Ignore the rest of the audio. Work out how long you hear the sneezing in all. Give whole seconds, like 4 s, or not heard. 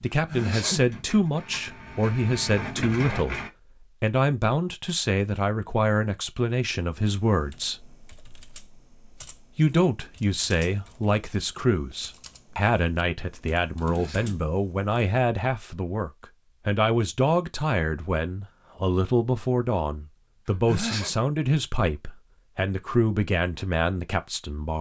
2 s.